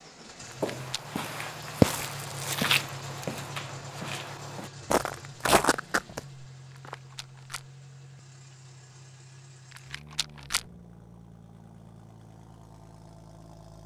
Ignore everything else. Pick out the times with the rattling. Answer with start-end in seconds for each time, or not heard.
0.5-1.0, 6.7-7.7, 9.7-10.7.